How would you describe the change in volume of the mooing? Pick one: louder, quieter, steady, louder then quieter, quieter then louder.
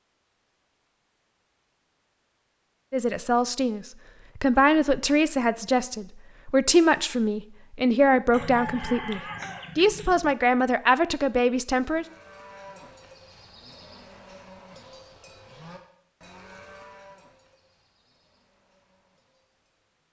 quieter.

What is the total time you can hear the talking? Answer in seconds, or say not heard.
9 s.